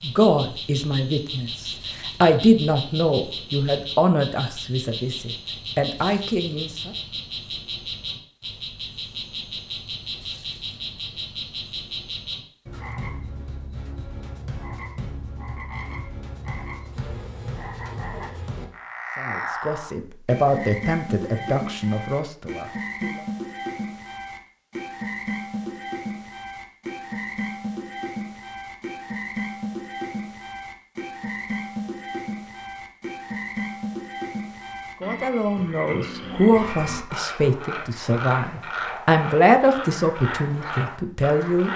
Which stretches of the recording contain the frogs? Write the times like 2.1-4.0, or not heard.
0.0-41.7.